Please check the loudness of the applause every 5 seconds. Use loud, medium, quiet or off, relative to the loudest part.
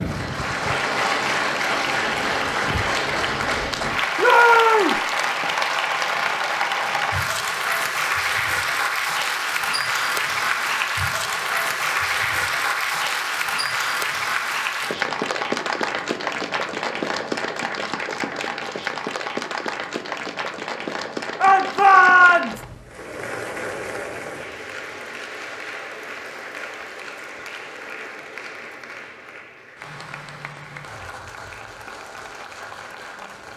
loud, loud, loud, loud, medium, quiet, quiet.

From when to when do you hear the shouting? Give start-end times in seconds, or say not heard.
4.2-5.0, 21.4-22.6.